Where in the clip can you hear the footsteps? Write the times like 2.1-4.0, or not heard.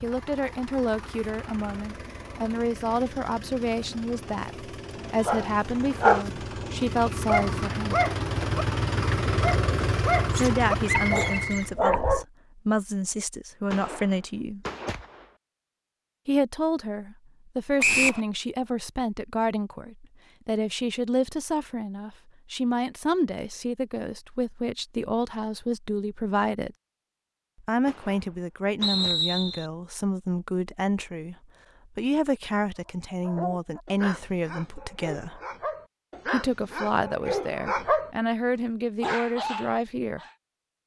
not heard.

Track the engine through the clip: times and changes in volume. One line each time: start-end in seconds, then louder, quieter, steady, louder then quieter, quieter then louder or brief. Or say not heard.
0.0-11.8 louder.